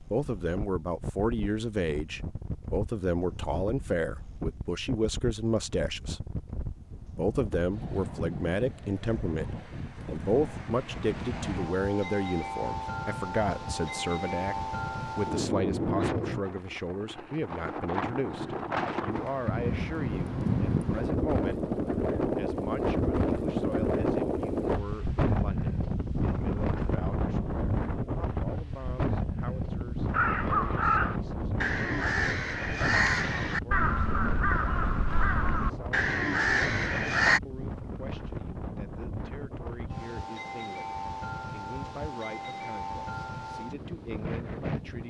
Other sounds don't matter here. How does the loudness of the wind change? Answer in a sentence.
The volume of the wind goes up, then down.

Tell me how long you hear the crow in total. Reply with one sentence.
You can hear the crow for 7 seconds altogether.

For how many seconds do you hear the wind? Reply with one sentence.
You can hear the wind for 45 seconds altogether.